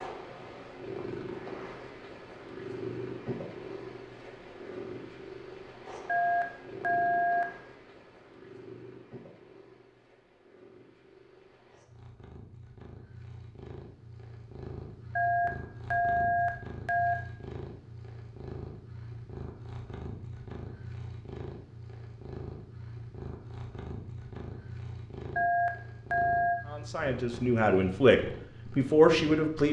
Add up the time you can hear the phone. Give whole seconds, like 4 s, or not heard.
5 s.